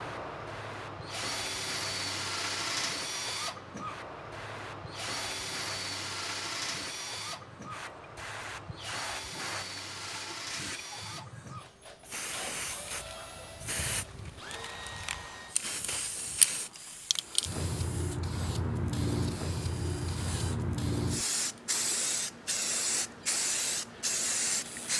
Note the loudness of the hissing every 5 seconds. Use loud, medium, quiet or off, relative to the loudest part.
quiet, medium, medium, loud, loud.